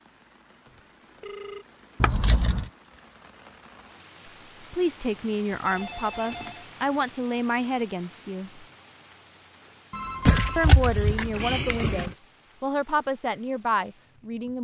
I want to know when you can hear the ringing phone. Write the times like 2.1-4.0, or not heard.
0.7-1.6, 5.7-6.7, 9.9-11.2.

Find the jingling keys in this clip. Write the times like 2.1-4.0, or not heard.
2.0-2.7, 5.7-6.5, 10.2-12.1.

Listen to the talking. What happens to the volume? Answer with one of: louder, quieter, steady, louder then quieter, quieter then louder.
steady.